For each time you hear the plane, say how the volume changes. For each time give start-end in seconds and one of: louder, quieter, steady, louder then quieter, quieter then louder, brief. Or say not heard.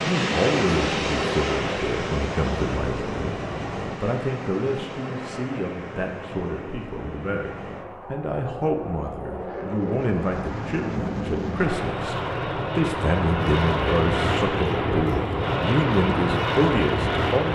0.0-17.4 quieter then louder.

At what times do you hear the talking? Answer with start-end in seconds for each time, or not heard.
0.0-17.4.